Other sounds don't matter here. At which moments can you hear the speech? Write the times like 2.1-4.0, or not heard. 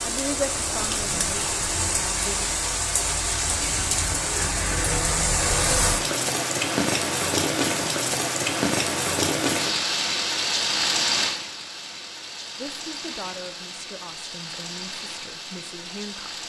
0.0-2.5, 12.6-16.4.